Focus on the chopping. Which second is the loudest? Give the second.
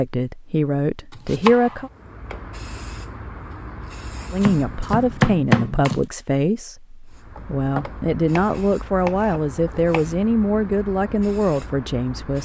5 s.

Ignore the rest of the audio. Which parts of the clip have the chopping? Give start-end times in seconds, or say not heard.
1.1-1.9, 4.4-6.1, 8.3-10.1.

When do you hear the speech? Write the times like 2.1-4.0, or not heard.
0.0-1.9, 4.3-12.4.